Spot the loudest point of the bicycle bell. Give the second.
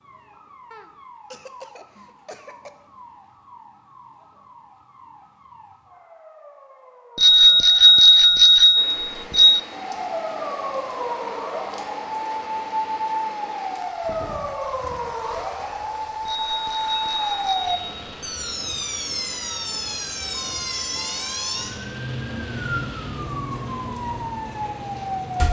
8 s.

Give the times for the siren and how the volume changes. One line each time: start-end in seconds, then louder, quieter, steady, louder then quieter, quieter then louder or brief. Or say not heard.
0.0-25.4 louder.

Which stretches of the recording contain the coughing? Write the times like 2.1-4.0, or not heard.
0.7-2.7.